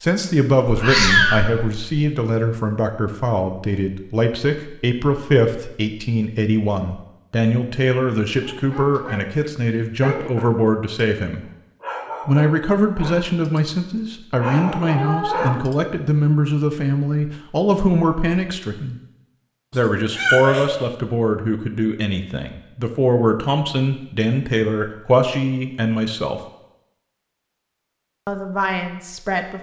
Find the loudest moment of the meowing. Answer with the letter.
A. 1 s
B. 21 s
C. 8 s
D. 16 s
A.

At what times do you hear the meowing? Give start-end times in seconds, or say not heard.
0.7-1.9, 14.9-15.8, 20.1-20.9.